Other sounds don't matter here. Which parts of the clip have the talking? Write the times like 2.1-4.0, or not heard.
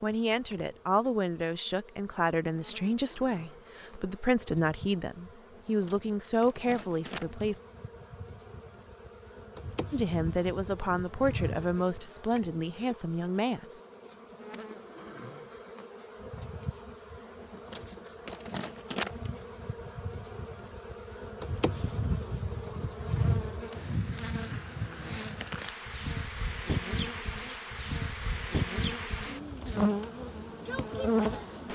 0.0-7.6, 9.9-13.7.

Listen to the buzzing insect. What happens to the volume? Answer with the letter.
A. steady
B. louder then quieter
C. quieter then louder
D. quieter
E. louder
E.